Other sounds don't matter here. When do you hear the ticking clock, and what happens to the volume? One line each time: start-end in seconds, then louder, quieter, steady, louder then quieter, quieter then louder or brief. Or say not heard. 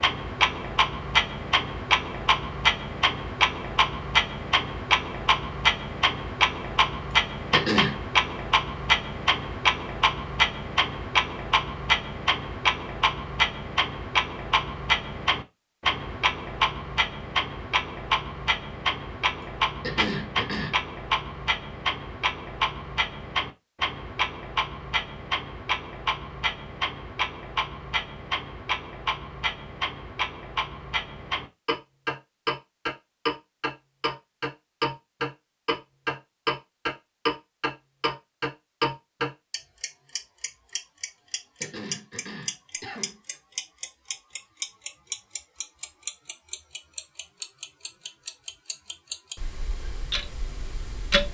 0.0-51.2 quieter.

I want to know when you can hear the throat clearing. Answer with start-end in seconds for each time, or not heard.
7.1-8.0, 19.4-20.8, 41.1-43.4.